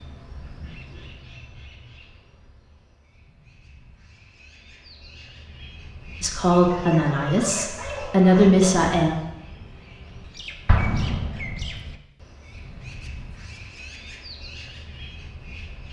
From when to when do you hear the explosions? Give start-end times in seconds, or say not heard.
10.7-11.9.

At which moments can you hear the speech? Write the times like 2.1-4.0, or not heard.
6.2-9.2.